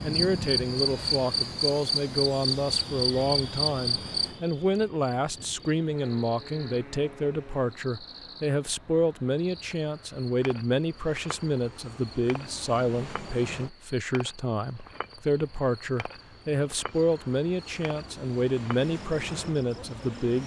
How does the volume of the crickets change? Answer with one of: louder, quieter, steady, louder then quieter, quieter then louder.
quieter.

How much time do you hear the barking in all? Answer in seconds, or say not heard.
not heard.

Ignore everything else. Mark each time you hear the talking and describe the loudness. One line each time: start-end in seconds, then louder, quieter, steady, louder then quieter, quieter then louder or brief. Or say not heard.
0.0-20.4 steady.